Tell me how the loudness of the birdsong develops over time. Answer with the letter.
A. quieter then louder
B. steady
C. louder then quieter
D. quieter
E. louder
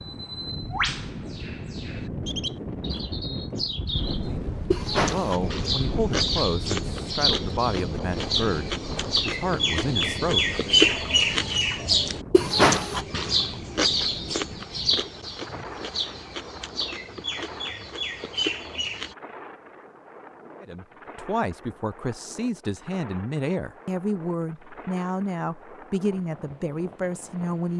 C.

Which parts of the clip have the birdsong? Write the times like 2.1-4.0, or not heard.
0.1-19.1.